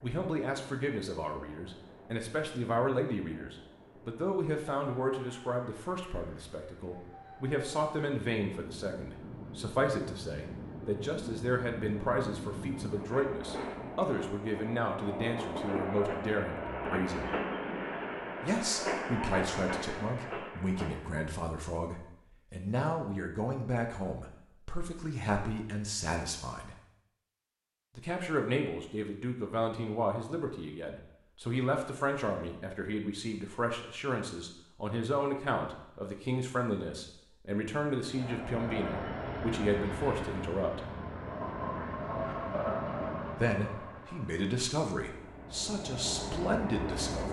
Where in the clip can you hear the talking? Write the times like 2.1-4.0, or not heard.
0.0-17.3, 18.4-26.8, 27.9-40.9, 43.4-47.2.